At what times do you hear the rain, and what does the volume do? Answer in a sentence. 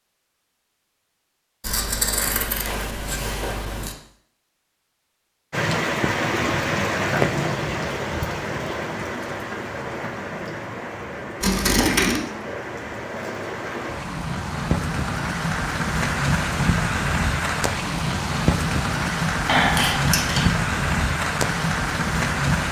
You can hear the rain from 5.5 to 22.6 s, getting quieter then louder.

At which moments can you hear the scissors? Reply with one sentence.
The scissors can be heard from 1.6 to 4.0 s, from 11.4 to 12.2 s and from 19.4 to 20.6 s.